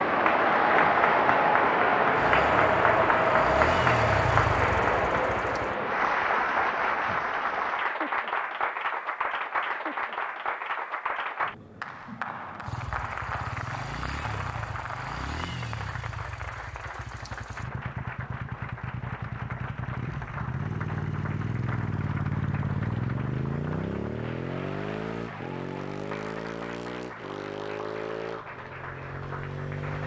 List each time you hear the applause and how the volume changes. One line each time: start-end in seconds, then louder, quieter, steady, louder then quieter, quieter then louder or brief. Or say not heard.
0.0-30.0 quieter.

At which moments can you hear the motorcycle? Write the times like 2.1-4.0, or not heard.
2.1-5.8, 12.6-30.0.